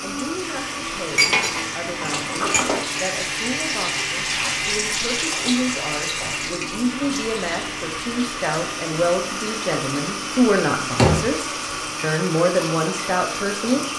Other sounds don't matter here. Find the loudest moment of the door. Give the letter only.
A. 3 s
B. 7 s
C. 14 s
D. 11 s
D.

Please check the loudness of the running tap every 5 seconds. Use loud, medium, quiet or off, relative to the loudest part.
loud, loud, medium.